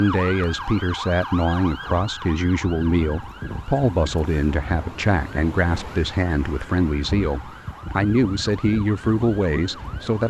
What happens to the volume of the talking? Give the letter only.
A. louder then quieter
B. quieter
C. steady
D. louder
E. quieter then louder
C.